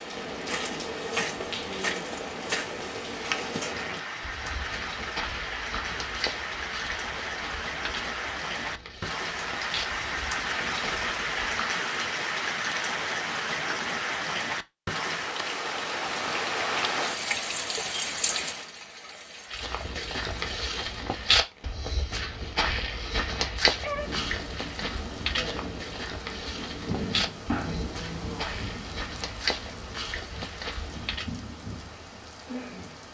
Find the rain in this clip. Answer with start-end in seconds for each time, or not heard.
0.0-33.0.